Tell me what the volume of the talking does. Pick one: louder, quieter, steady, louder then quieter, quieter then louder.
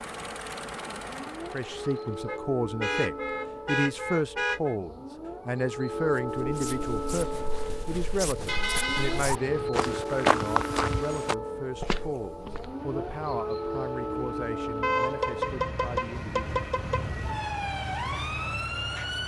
quieter.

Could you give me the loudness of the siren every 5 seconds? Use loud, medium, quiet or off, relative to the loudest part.
medium, loud, loud, loud.